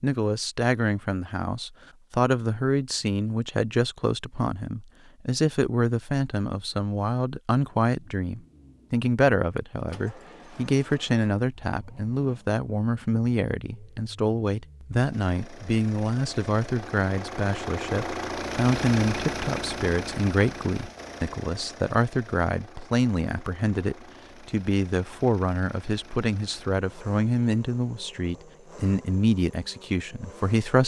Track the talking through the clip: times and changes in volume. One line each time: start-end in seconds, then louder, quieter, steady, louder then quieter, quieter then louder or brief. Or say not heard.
0.0-30.8 steady.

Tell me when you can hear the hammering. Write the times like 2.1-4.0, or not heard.
not heard.